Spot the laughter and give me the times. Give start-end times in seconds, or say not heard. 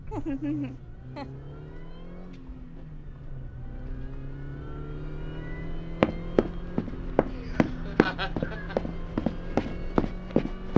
0.1-1.2, 7.3-8.8.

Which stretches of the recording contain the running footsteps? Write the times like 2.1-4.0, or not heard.
6.0-10.7.